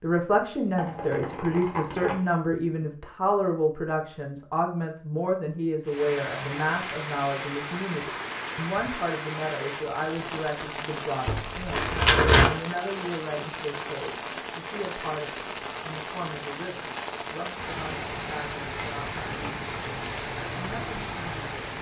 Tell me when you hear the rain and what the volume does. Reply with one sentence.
You can hear the rain from 5.8 to 21.7 s, at a steady volume.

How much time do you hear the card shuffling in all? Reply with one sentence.
You can hear the card shuffling for 4 seconds altogether.